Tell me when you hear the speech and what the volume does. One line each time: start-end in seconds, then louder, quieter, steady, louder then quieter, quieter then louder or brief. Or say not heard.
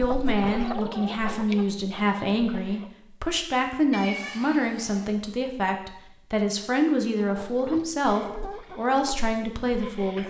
0.0-10.2 steady.